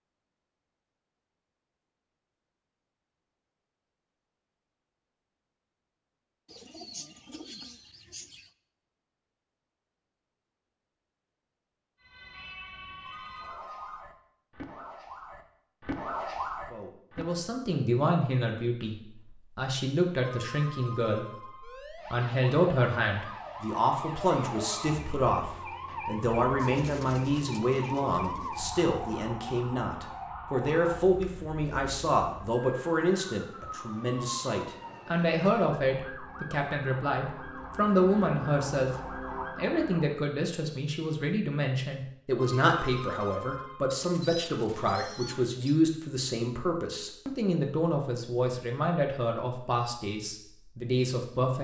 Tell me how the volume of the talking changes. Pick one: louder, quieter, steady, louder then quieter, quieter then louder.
steady.